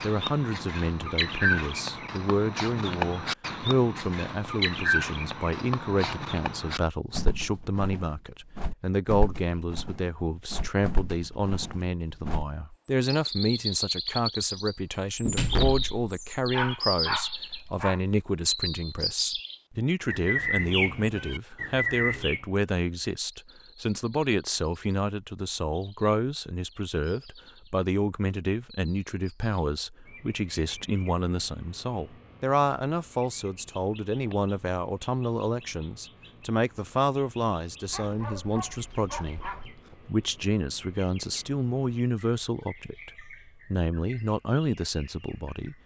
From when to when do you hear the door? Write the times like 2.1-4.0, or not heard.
15.2-16.1.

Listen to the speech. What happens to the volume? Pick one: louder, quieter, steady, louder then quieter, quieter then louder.
steady.